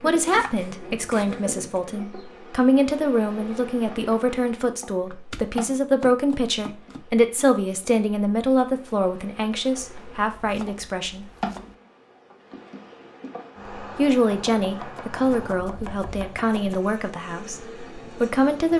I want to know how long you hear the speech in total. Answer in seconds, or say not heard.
16 s.